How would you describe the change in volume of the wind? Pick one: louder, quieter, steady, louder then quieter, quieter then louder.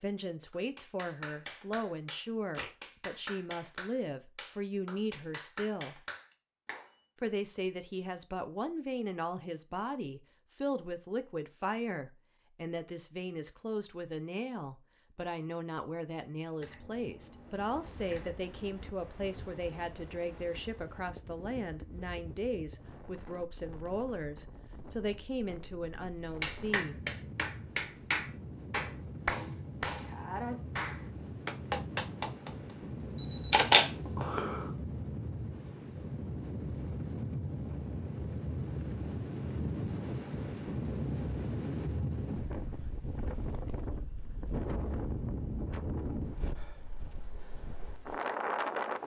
louder.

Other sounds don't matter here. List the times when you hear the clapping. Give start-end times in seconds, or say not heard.
0.5-6.9, 26.4-32.8.